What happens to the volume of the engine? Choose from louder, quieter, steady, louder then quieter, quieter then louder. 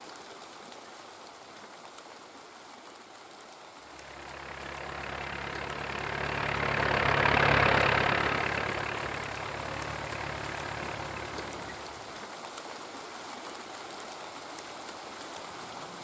louder then quieter.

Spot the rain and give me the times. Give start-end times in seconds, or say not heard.
0.0-15.9.